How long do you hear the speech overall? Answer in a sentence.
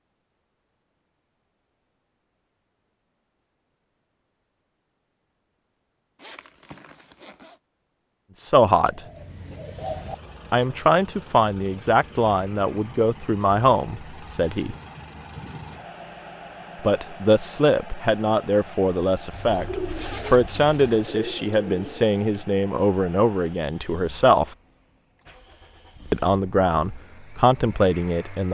The speech can be heard for 15 seconds in total.